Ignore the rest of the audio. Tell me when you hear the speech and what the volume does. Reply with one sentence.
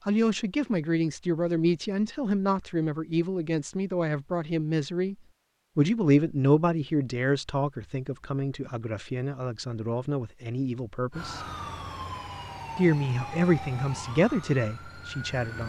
You can hear the speech from 0.1 to 5.2 s, at a steady volume; from 5.8 to 11.4 s, getting quieter; and briefly from 12.8 to 15.6 s.